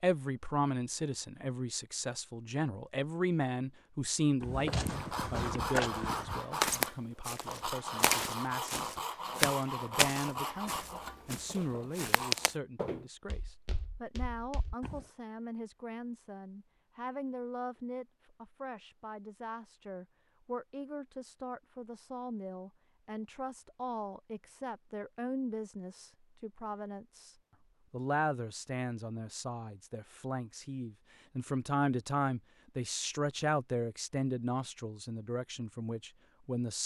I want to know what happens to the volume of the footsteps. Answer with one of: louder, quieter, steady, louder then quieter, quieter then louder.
quieter.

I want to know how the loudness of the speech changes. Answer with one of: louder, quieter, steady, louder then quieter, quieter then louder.
quieter then louder.